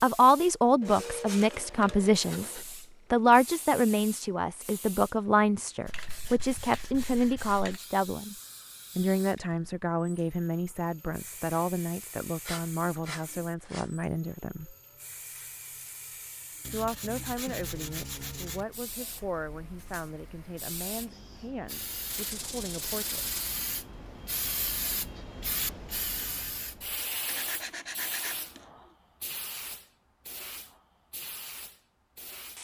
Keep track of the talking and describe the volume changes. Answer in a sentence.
The volume of the talking goes down.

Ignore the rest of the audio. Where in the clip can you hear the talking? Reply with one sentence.
You can hear the talking from 0.0 to 8.3 s, from 8.9 to 14.8 s and from 16.7 to 23.4 s.